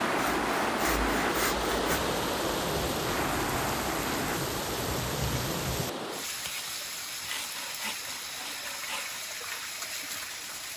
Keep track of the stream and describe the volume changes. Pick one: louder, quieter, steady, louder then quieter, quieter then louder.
quieter.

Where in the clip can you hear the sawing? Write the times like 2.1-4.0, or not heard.
0.1-2.0, 6.3-9.2.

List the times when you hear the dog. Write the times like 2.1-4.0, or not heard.
not heard.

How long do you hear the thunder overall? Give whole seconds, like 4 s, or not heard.
4 s.